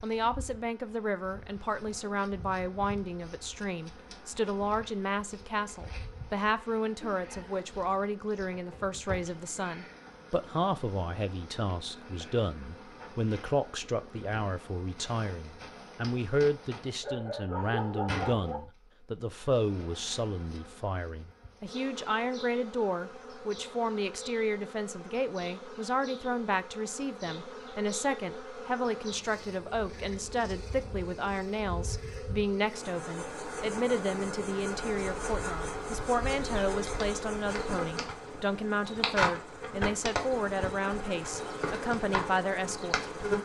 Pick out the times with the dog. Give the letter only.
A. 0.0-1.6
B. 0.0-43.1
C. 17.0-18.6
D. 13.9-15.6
C.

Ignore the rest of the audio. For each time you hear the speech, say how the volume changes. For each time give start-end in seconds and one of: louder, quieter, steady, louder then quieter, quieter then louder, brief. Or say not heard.
0.0-43.1 steady.